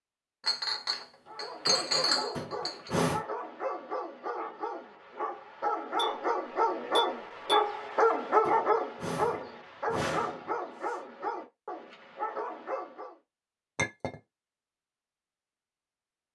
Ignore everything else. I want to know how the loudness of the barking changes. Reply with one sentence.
The loudness of the barking goes up, then down.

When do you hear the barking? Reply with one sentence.
You can hear the barking from 1.2 to 13.2 s.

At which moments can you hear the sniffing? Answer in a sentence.
You can hear the sniffing from 2.4 to 3.2 s and from 8.4 to 10.9 s.